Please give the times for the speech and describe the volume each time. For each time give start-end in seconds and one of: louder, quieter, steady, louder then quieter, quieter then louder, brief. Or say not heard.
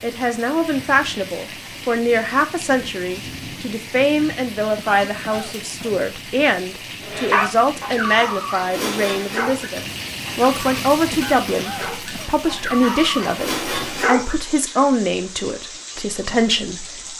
0.0-16.9 steady.